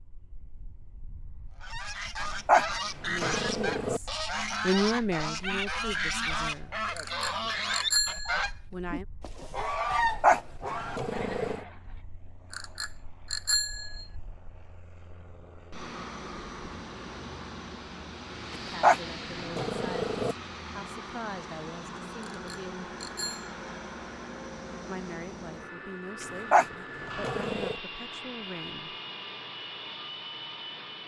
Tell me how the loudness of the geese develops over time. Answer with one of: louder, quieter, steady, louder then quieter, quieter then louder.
steady.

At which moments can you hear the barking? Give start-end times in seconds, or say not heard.
2.5-4.0, 10.2-11.6, 18.8-20.4, 26.5-27.8.